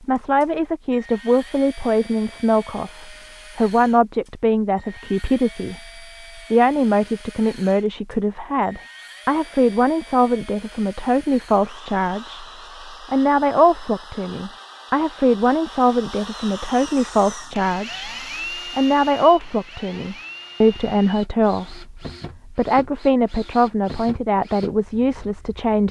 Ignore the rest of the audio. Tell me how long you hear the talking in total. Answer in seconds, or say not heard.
24 s.